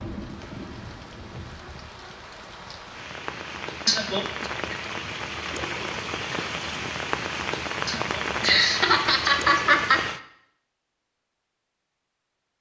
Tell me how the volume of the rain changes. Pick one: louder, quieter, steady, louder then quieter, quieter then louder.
louder.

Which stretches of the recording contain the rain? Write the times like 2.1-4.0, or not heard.
0.0-10.2.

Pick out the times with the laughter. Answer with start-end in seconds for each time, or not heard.
3.9-4.5, 7.8-10.0.